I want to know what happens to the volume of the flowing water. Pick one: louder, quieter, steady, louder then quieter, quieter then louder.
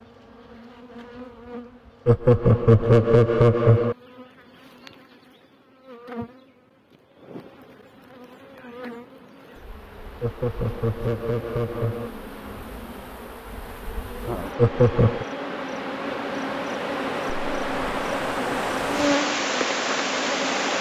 louder.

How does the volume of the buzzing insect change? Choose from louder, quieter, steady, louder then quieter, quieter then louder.
louder.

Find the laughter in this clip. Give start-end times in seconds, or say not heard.
2.0-4.0, 10.2-12.1, 14.6-15.2.